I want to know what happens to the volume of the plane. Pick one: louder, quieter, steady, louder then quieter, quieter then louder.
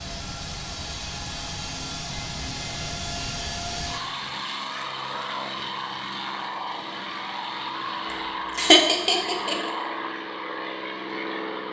steady.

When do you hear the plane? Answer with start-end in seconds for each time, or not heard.
0.0-11.6.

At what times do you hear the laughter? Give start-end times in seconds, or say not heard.
8.5-9.7.